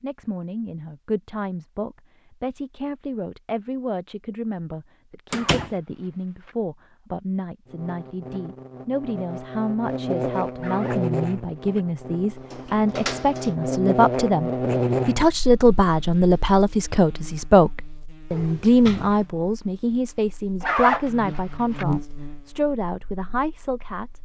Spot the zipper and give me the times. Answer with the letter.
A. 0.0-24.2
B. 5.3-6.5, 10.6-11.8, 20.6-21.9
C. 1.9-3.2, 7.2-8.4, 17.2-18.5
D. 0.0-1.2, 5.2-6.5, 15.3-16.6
B.